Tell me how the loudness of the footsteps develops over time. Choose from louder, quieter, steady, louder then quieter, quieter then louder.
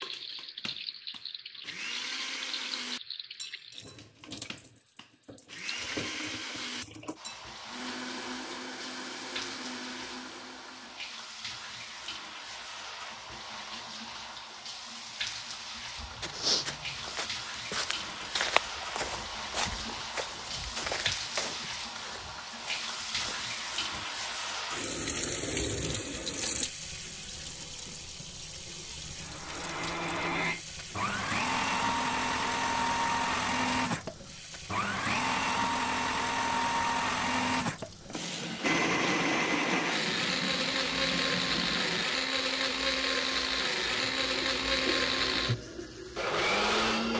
quieter.